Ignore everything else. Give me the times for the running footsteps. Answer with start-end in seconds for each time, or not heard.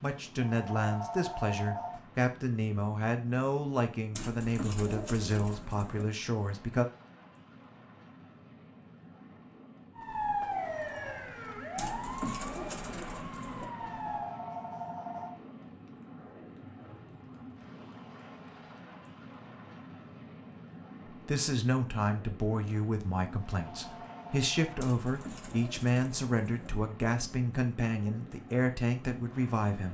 not heard.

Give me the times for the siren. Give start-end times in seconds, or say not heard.
9.9-14.4.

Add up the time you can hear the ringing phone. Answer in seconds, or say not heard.
4 s.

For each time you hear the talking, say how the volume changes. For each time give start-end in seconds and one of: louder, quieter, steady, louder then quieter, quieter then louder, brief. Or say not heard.
0.0-6.8 steady
21.1-29.9 steady.